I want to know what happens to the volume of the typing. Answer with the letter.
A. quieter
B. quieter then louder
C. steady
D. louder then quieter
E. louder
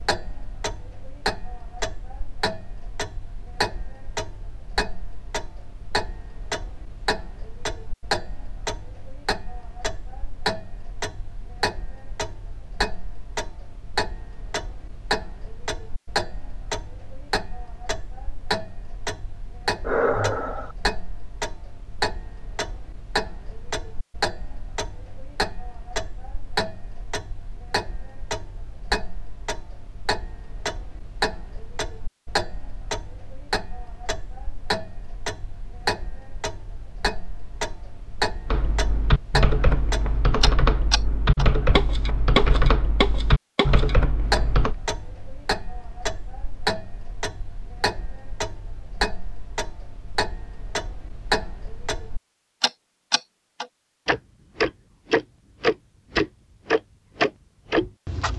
C.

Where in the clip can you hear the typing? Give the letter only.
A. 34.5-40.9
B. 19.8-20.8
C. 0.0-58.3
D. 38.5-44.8
D.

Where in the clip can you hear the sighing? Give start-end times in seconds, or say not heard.
19.8-20.8.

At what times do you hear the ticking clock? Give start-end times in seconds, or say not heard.
0.0-58.3.